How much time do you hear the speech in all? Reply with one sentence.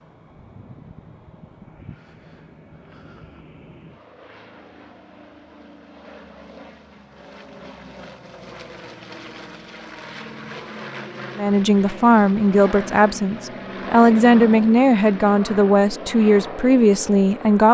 The speech can be heard for 6 seconds in total.